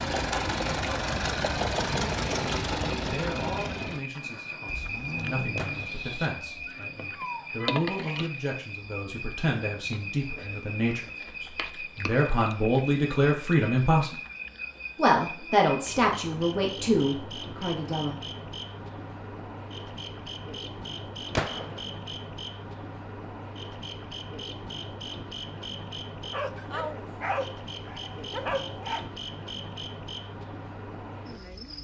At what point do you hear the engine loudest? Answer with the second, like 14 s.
2 s.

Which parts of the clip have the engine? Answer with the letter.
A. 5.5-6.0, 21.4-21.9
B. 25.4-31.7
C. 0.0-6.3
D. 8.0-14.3
C.